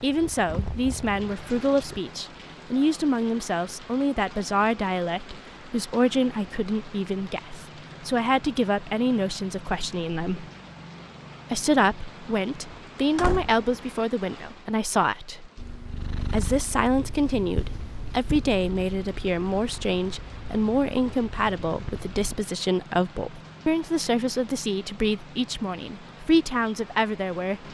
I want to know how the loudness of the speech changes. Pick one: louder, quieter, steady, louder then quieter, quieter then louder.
steady.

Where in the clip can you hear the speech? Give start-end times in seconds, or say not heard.
0.0-10.4, 11.5-15.5, 16.3-27.6.